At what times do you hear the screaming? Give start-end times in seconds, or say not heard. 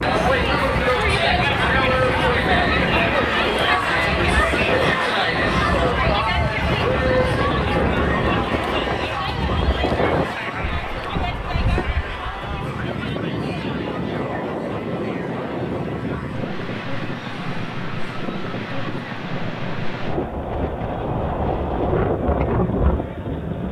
not heard.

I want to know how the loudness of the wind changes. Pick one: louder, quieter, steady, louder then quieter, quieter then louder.
steady.